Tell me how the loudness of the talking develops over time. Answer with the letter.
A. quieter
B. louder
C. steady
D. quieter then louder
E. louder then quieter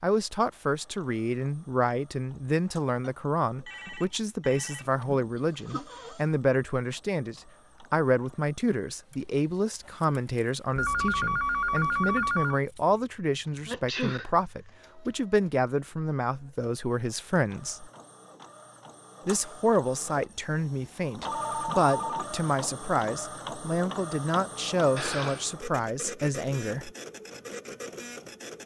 C.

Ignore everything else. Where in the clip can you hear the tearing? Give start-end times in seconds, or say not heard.
not heard.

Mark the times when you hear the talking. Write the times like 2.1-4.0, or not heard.
0.0-17.9, 19.2-26.9.